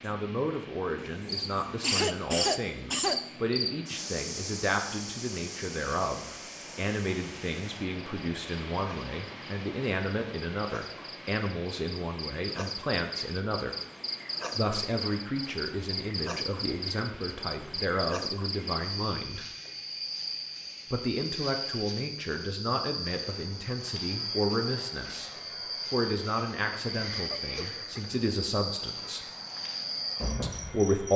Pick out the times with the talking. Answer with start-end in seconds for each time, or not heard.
0.0-13.8, 14.6-19.4, 20.9-29.2, 30.4-31.1.